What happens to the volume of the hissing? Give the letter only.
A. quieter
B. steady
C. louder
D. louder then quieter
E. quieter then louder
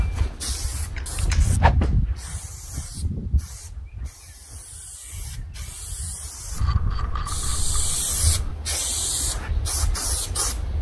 E.